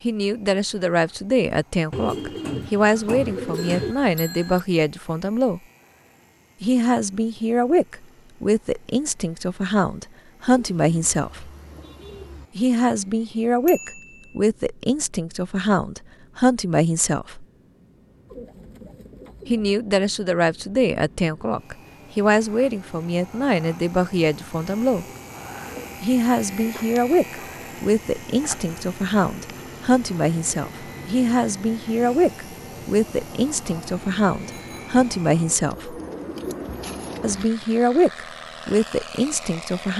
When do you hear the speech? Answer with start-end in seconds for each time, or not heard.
0.0-5.6, 6.6-11.5, 12.6-17.4, 19.4-25.1, 26.0-36.0, 37.2-39.9.